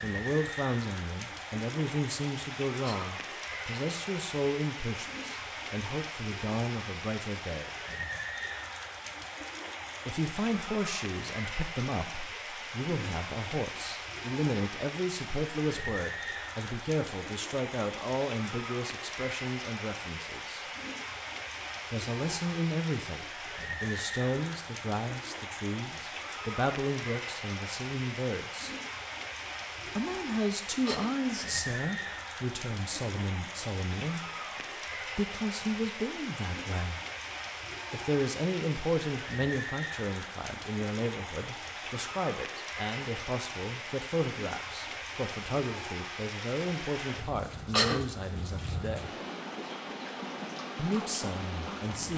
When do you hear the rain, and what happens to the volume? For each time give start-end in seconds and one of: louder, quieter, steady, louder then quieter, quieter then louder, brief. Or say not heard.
0.0-52.1 steady.